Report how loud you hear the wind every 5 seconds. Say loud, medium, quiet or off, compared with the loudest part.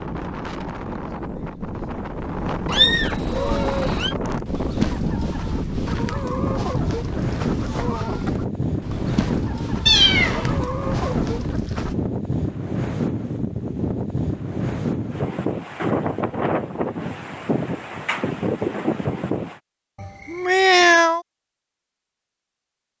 loud, loud, loud, loud, off.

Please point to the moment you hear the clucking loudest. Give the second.
5 s.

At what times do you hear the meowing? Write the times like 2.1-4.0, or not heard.
2.6-4.2, 9.8-10.7, 20.0-21.2.